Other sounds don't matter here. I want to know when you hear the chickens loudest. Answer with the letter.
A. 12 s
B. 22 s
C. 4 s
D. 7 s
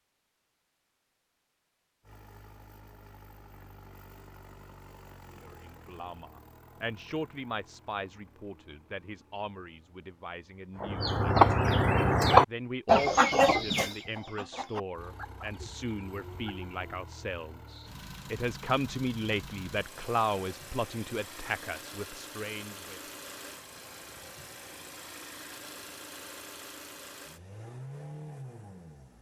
A.